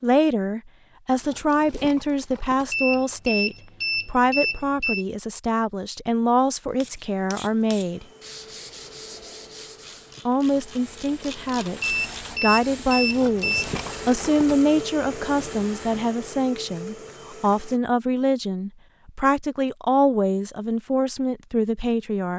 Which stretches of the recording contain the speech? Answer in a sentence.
The speech can be heard from 0.0 to 8.1 s and from 10.2 to 22.3 s.